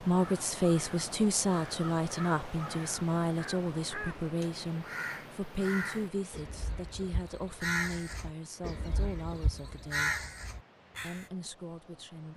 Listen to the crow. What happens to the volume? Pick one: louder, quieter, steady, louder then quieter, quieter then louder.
louder.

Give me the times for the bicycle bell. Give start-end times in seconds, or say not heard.
not heard.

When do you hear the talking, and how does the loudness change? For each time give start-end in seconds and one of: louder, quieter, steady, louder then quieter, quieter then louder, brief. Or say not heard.
0.0-10.2 quieter
11.0-12.3 brief.